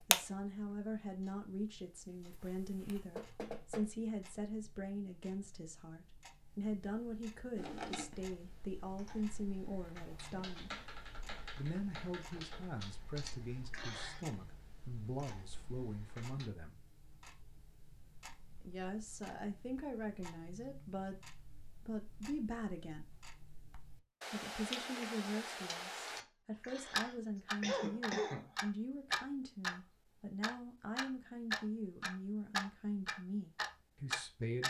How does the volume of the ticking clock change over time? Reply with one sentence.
The volume of the ticking clock goes down, then up.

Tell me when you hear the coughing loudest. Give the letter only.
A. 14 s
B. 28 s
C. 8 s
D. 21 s
B.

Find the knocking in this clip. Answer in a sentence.
You can hear the knocking from 3.1 to 3.9 s.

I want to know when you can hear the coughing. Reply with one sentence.
The coughing can be heard from 13.2 to 14.2 s and from 26.1 to 28.6 s.